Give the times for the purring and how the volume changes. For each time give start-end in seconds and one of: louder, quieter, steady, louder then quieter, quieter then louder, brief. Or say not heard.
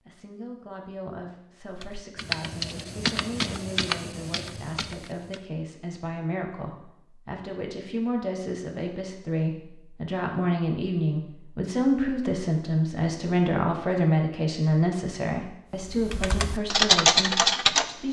not heard.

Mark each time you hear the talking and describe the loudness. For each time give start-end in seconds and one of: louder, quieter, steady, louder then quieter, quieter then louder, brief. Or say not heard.
0.1-18.0 louder.